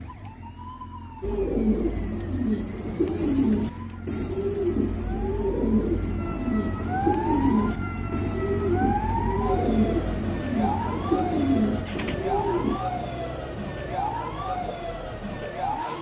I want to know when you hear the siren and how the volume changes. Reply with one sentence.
You can hear the siren from 0.0 to 15.9 s, getting louder.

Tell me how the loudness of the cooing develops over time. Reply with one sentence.
The loudness of the cooing stays about the same.